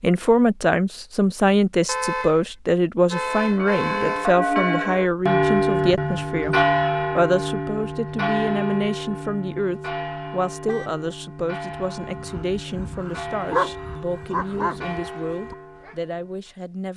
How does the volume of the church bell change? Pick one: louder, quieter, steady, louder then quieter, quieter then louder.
quieter.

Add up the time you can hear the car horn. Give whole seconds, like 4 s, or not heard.
3 s.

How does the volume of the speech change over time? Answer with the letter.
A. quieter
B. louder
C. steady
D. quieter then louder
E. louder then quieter
A.